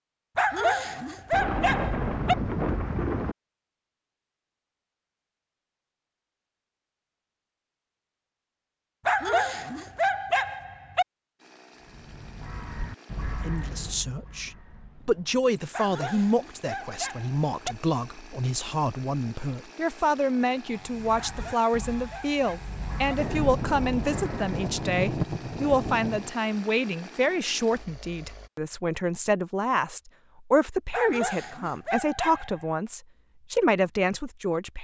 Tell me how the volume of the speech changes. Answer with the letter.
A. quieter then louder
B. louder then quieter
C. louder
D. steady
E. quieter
D.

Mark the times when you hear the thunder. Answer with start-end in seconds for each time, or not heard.
1.3-3.4, 23.1-26.3.